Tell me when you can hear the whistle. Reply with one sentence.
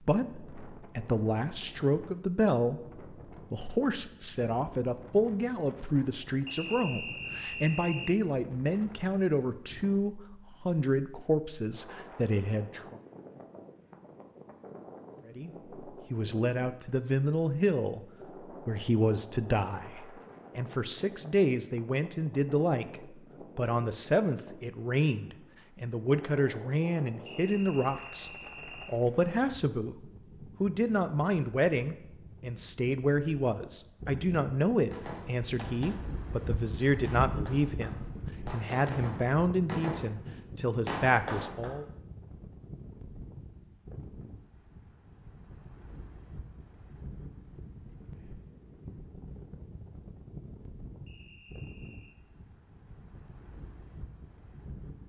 You can hear the whistle from 6.5 to 8.2 s, from 27.2 to 28.9 s and from 51.0 to 52.1 s.